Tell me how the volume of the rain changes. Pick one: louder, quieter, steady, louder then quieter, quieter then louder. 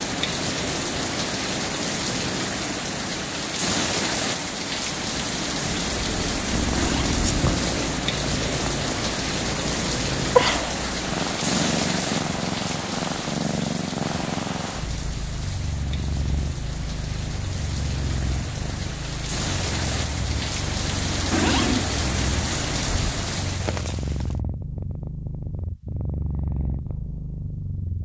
quieter then louder.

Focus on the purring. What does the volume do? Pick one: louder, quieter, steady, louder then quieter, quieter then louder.
louder then quieter.